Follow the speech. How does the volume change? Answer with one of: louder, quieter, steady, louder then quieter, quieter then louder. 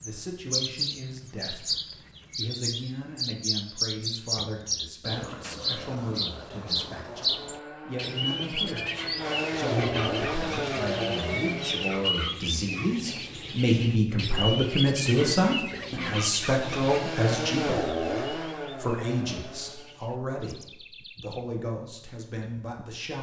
louder then quieter.